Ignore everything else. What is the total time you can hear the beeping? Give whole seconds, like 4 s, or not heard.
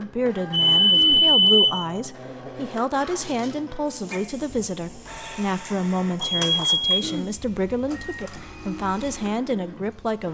2 s.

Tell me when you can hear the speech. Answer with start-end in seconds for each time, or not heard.
0.0-10.2.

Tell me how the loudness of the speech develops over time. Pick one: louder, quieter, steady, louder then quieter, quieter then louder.
steady.